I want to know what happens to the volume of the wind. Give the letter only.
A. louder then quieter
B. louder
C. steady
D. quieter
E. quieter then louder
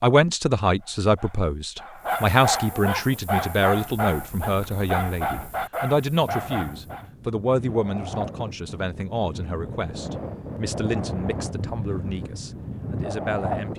B.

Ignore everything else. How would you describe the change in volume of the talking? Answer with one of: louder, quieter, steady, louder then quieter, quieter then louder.
quieter.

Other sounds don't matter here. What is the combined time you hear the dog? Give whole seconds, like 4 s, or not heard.
6 s.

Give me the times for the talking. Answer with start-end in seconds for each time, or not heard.
0.0-13.7.